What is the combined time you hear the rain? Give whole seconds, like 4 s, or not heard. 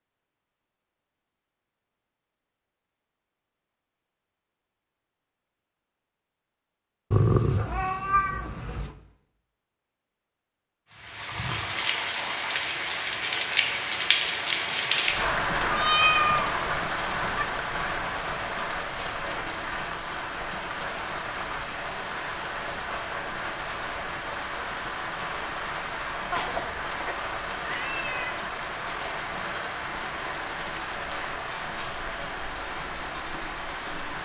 23 s.